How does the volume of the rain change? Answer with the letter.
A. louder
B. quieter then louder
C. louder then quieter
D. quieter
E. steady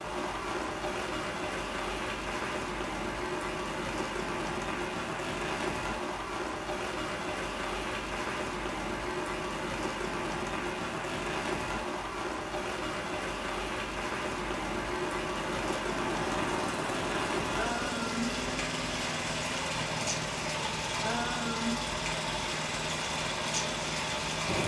E.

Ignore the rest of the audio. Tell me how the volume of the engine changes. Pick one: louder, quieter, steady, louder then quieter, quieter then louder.
steady.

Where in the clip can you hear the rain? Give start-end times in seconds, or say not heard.
0.0-24.6.